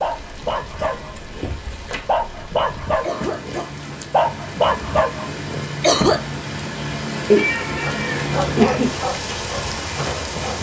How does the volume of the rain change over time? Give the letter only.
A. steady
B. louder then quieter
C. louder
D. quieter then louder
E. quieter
C.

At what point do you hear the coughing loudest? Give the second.
6 s.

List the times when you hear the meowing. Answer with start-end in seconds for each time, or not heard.
0.8-2.0, 7.2-8.9.